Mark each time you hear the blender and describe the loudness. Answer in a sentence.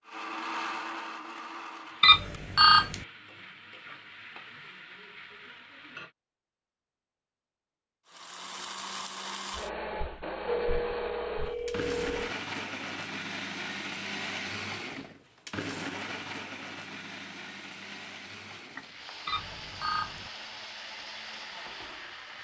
The blender can be heard briefly from 0.0 to 2.2 s; and from 8.1 to 22.4 s, getting quieter.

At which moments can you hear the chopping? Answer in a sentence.
You can't hear the chopping here.